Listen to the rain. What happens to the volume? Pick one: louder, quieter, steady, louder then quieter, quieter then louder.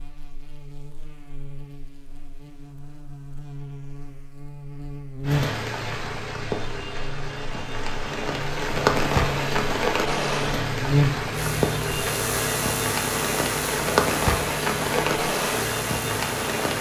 louder.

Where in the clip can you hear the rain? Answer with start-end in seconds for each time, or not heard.
5.2-16.7.